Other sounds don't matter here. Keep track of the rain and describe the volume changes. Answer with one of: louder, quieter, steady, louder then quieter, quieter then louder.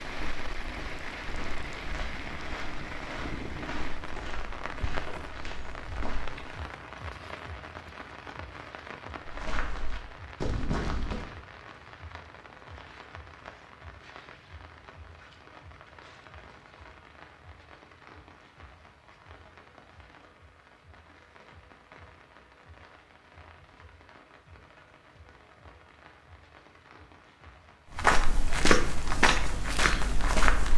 quieter.